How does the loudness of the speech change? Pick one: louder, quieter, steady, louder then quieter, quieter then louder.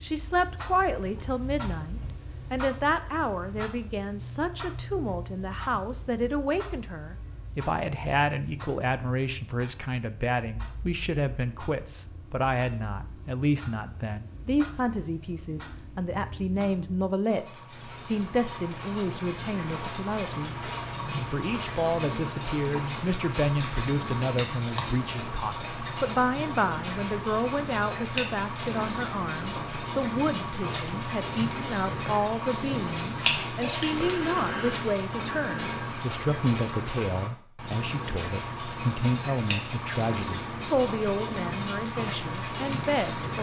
steady.